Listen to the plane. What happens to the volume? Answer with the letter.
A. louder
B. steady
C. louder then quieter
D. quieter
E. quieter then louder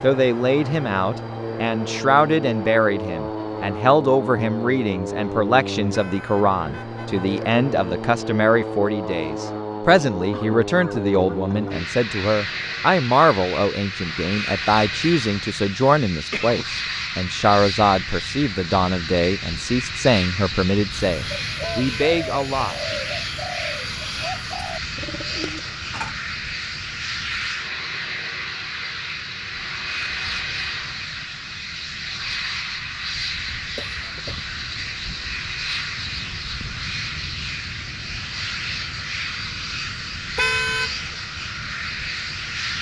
B.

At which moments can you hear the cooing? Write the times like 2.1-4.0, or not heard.
20.9-26.1.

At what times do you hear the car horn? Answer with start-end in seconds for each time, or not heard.
5.9-7.2, 21.6-22.1, 40.4-41.0.